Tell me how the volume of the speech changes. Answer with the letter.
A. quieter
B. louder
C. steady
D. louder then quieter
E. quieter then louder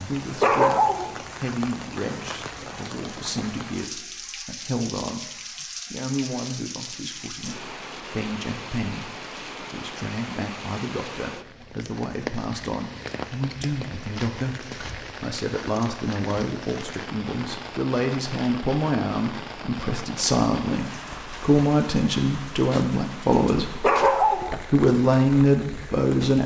B.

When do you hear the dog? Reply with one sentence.
The dog can be heard from 0.4 to 1.1 s and from 23.8 to 24.6 s.